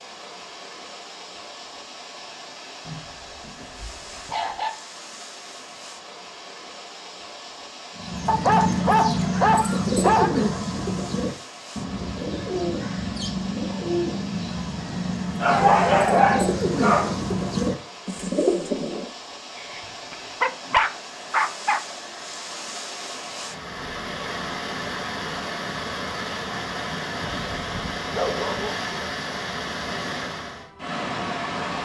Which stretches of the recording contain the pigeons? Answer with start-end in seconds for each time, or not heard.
8.0-19.1.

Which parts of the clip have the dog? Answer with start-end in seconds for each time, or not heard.
2.9-4.7, 8.2-10.3, 15.4-17.1, 19.8-21.8, 27.2-28.8.